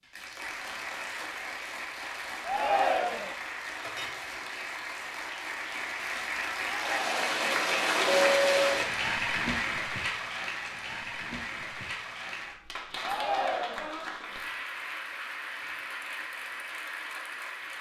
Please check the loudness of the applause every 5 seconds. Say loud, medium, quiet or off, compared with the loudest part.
medium, loud, medium, medium.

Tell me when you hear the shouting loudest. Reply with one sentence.
The loudest moment of the shouting is at 3 seconds.